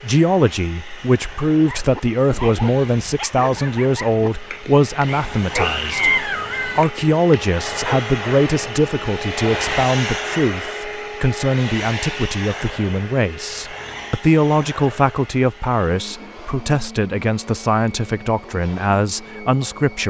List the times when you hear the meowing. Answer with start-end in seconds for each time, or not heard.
5.0-6.8.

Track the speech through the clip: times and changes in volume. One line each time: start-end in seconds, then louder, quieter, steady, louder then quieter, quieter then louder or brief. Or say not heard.
0.0-20.0 steady.